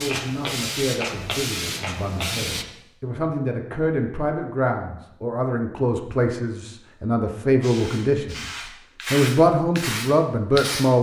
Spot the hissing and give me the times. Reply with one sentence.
You can hear the hissing from 0.0 to 2.6 s and from 7.6 to 10.9 s.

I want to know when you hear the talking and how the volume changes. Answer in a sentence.
You can hear the talking from 0.0 to 10.9 s, getting louder.